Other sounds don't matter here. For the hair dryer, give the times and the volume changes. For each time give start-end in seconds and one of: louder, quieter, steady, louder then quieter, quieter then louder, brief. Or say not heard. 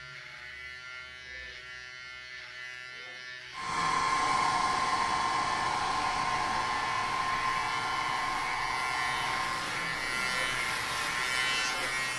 3.5-12.1 quieter.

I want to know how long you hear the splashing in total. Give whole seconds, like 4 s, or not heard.
not heard.